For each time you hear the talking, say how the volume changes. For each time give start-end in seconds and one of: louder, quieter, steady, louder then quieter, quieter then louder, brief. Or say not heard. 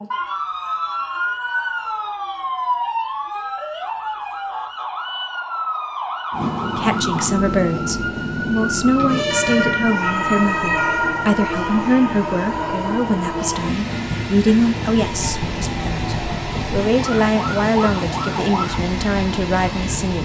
6.7-20.2 steady.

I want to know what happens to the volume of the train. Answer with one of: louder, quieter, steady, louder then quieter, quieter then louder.
steady.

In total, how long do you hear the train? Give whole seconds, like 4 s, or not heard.
14 s.